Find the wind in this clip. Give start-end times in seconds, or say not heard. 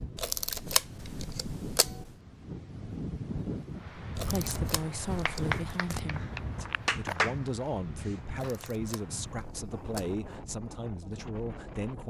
0.0-12.0.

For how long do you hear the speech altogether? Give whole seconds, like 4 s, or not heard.
8 s.